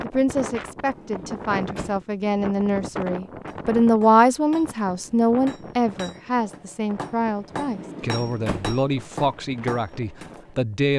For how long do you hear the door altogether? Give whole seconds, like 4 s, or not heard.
2 s.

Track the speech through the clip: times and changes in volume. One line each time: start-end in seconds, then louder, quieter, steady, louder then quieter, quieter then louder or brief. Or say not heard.
0.0-10.9 louder then quieter.